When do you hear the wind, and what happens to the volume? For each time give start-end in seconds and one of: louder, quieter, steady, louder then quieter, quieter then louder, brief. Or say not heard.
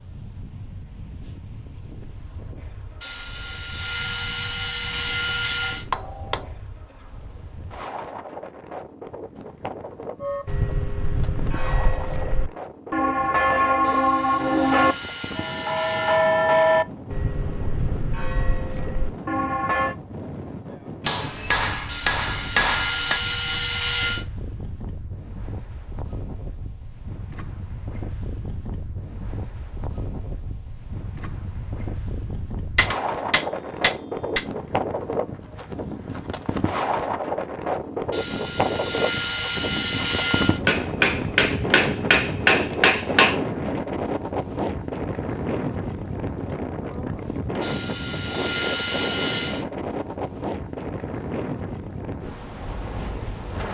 0.0-53.6 louder.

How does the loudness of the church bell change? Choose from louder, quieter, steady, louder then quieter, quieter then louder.
louder then quieter.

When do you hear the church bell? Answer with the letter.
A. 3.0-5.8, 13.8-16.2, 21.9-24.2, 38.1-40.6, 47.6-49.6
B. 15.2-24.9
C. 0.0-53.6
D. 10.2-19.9
D.